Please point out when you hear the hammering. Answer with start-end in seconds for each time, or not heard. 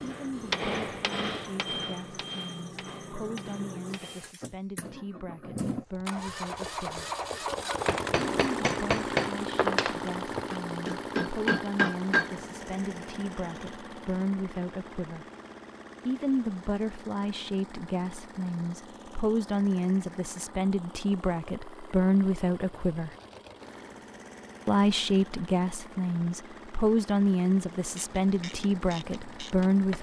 0.0-4.3, 7.8-12.3.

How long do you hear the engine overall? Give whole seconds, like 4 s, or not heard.
30 s.